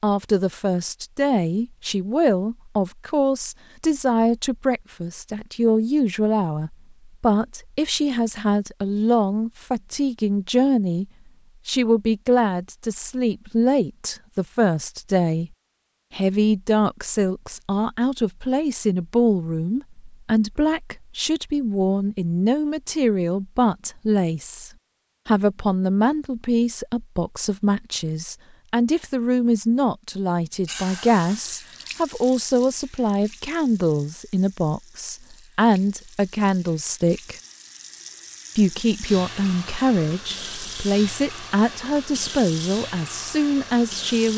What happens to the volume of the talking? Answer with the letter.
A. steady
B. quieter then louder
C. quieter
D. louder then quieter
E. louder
A.